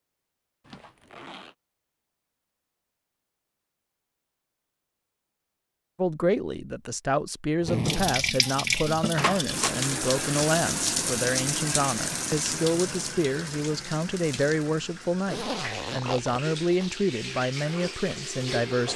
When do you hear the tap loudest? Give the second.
11 s.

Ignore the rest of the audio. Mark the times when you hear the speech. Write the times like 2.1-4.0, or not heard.
6.0-18.9.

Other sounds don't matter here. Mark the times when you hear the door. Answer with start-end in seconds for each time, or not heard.
9.2-9.8.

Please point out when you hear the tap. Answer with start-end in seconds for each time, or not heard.
7.8-18.9.